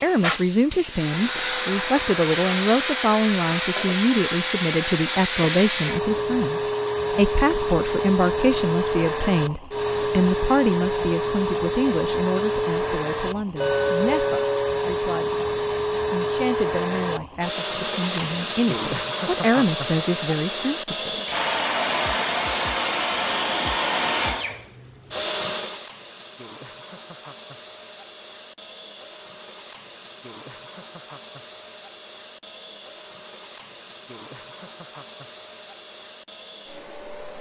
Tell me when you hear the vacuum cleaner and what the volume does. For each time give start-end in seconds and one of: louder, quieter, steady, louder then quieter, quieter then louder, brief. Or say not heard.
0.0-37.3 quieter.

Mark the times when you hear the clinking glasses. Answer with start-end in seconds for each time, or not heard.
13.6-14.8.